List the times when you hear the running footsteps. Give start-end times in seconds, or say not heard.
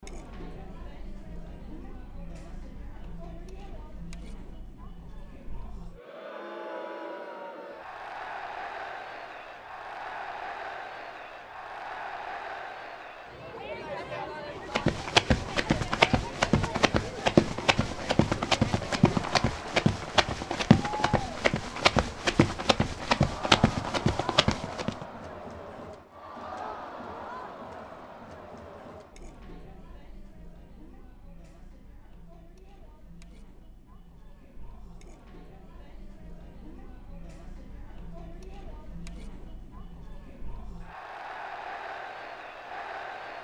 14.7-25.1.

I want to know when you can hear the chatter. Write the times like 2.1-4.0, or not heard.
0.0-43.4.